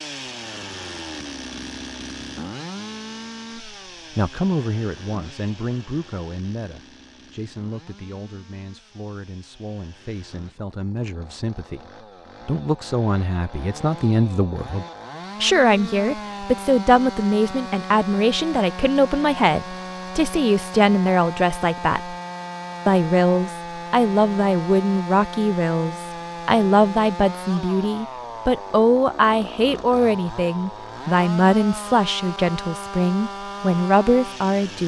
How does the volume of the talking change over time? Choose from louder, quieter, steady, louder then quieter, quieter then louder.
louder.